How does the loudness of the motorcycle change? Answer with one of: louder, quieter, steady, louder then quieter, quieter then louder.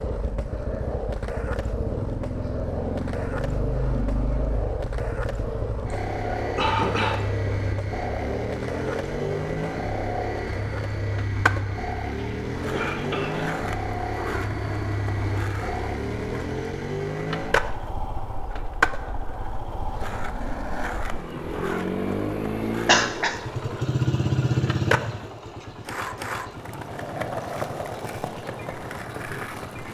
steady.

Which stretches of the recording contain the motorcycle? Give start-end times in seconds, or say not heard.
0.0-29.8.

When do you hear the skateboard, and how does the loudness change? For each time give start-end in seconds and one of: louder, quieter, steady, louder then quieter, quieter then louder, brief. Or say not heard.
0.0-29.8 steady.